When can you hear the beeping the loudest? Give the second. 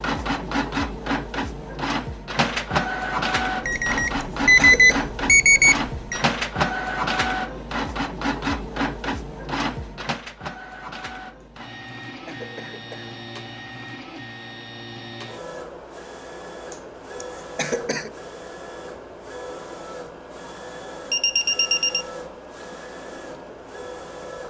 5 s.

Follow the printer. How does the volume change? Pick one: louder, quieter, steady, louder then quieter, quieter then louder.
quieter.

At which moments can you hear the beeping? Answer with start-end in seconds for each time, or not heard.
3.6-6.2, 21.1-22.1.